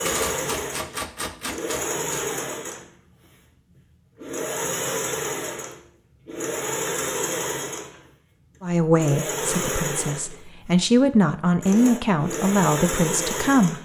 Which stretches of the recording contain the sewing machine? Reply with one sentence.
You can hear the sewing machine from 0.0 to 13.7 s.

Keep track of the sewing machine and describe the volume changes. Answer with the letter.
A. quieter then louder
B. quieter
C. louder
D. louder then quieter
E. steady
E.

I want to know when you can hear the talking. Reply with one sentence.
The talking can be heard from 8.6 to 13.7 s.